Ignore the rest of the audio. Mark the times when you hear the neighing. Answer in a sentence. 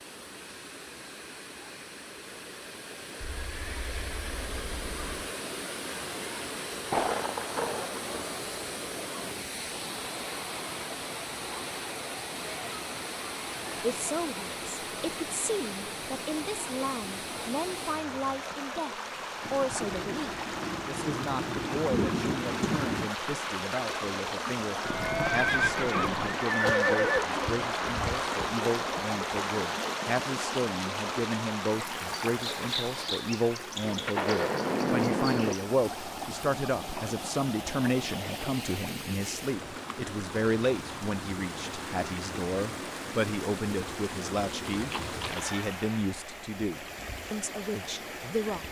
You can hear the neighing from 3.2 to 5.3 s, from 24.8 to 27.2 s and from 44.6 to 45.5 s.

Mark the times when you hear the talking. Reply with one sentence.
The talking can be heard from 13.8 to 48.6 s.